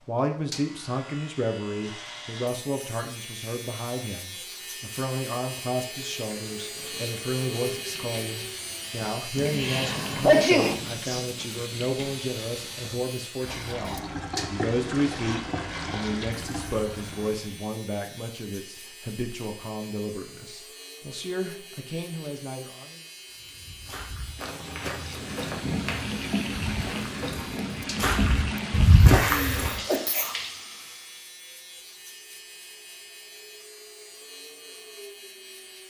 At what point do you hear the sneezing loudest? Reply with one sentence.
The volume of the sneezing peaks at 10 seconds.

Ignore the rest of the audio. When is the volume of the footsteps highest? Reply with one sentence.
The loudest moment of the footsteps is at 29 seconds.